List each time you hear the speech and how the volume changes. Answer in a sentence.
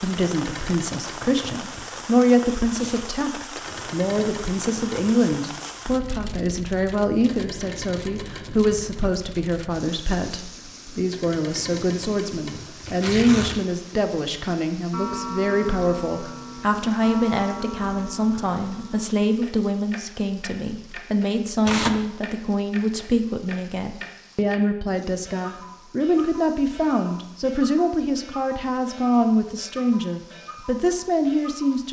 You can hear the speech from 0.0 to 31.8 s, at a steady volume.